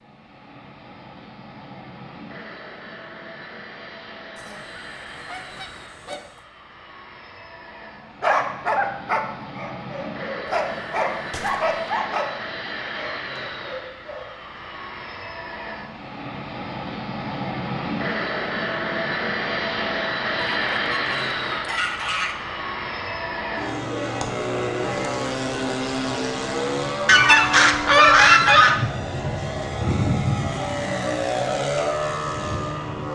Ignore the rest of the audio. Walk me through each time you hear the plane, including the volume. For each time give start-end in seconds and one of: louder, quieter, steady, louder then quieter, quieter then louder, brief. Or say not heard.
0.0-33.1 louder.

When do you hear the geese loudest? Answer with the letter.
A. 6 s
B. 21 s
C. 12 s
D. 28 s
D.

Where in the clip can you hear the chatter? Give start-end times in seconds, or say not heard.
not heard.